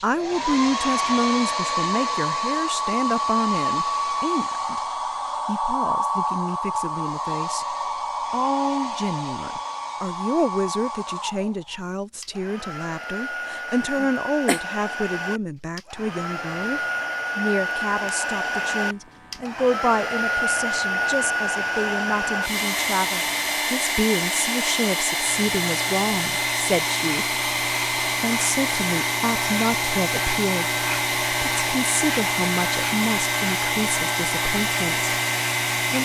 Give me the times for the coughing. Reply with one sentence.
The coughing can be heard from 13.7 to 14.6 s.